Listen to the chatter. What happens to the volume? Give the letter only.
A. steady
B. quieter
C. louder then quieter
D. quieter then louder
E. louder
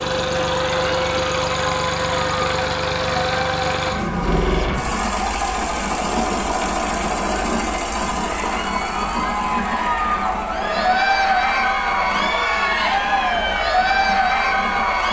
E.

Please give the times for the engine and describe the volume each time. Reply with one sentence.
The engine can be heard from 0.0 to 15.0 s, getting quieter.